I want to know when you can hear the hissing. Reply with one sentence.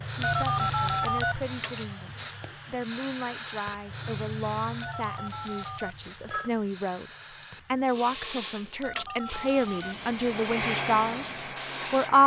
The hissing can be heard from 0.0 to 12.2 s.